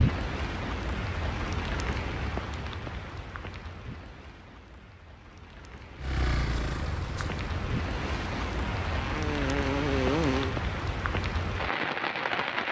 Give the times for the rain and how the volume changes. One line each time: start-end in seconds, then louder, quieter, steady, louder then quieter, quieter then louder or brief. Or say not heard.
0.0-12.6 quieter then louder.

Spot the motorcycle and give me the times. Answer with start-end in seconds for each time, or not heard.
6.0-10.6.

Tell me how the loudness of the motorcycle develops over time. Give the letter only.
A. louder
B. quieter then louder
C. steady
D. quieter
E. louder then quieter
B.